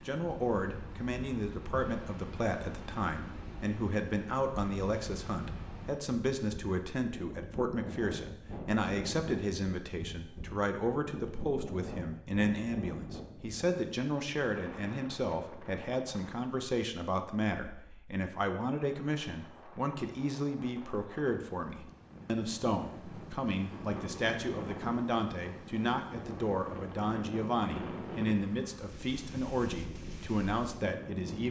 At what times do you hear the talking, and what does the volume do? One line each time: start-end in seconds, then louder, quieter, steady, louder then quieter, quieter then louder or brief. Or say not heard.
0.1-31.4 steady.